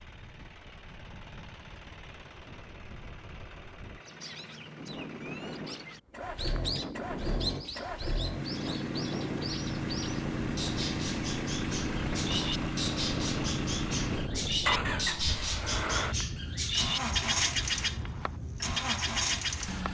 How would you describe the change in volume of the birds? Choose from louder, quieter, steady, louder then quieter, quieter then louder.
louder.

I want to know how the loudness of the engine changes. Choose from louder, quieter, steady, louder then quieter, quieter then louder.
louder.